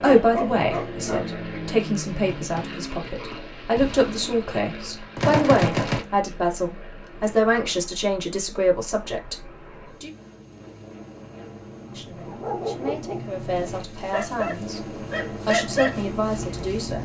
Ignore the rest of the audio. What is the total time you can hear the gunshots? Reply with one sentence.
You can hear the gunshots for 3 seconds altogether.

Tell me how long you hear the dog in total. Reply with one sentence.
The dog can be heard for 6 seconds in total.